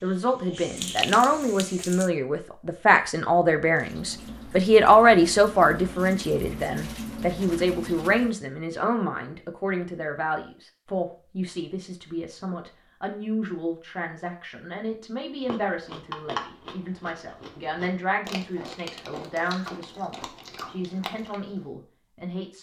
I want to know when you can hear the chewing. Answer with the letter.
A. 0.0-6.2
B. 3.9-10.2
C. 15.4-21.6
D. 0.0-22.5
C.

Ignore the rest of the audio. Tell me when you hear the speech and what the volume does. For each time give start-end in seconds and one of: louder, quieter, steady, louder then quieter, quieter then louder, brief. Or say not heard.
0.0-22.5 quieter.